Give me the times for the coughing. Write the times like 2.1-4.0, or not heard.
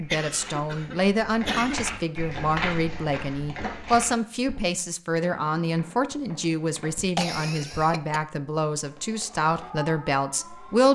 0.1-1.9, 7.0-8.2.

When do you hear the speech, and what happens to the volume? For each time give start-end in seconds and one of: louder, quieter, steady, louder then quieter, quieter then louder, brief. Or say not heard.
0.0-10.8 steady.